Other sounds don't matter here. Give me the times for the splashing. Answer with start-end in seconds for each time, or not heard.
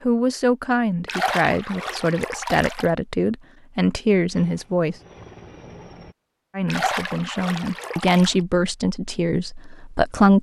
1.1-2.9, 6.7-8.3.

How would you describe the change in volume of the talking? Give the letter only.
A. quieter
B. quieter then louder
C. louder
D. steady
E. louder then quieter
D.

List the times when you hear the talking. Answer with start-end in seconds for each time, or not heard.
0.0-5.0, 6.5-10.3.